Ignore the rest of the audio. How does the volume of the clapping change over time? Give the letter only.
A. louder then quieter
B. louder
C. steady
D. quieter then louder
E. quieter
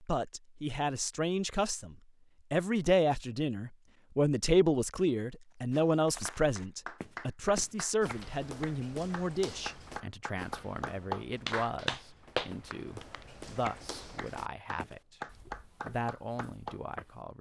A.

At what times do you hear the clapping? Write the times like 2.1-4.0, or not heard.
6.2-16.8.